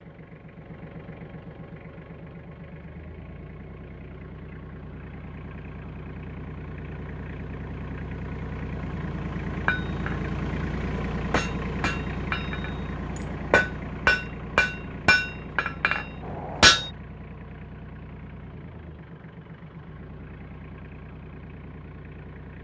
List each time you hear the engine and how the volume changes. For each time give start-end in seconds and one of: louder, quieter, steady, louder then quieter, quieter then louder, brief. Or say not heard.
0.0-22.6 louder then quieter.